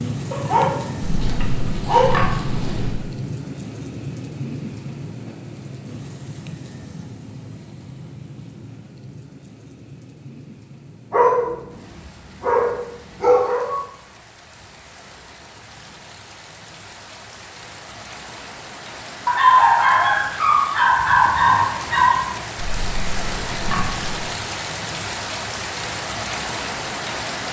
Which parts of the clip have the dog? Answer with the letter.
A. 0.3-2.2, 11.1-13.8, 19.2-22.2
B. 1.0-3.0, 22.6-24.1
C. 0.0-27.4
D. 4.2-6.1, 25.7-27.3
A.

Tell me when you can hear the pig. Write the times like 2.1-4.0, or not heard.
1.0-3.0, 22.6-24.1.